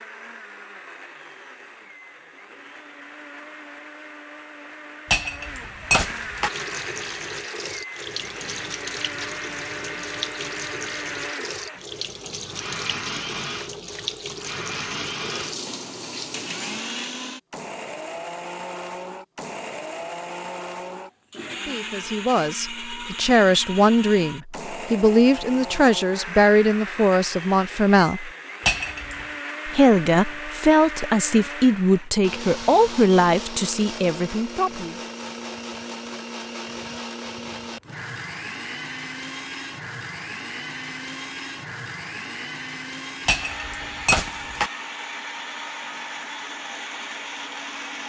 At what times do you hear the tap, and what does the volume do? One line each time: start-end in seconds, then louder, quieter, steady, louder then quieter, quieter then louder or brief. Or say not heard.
6.4-16.9 steady.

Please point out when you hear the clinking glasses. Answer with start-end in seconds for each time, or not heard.
5.1-6.5, 28.6-29.2, 43.2-44.7.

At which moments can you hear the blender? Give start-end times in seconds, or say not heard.
0.0-48.0.